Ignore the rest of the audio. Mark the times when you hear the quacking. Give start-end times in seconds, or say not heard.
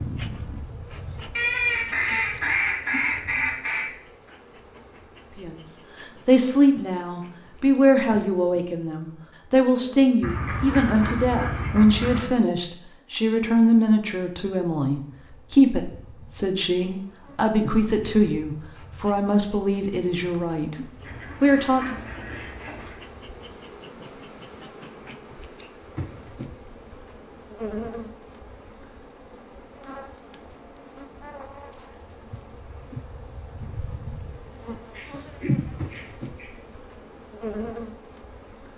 1.4-3.9, 10.2-12.2, 21.0-23.0, 34.9-36.6.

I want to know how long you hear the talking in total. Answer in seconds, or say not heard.
17 s.